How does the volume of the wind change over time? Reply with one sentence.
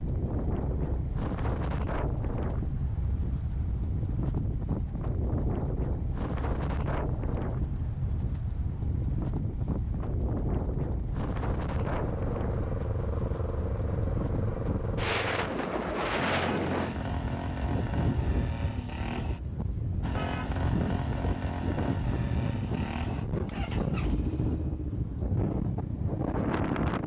The loudness of the wind stays about the same.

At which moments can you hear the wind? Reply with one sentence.
The wind can be heard from 0.0 to 27.0 s.